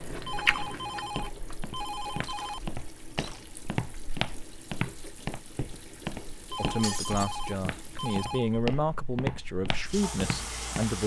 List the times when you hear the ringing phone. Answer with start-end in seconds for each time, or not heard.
0.2-2.6, 6.5-8.6.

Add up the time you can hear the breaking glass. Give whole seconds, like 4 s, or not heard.
2 s.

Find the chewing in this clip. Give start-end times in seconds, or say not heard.
0.0-2.8.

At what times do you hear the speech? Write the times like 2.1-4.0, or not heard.
6.5-11.0.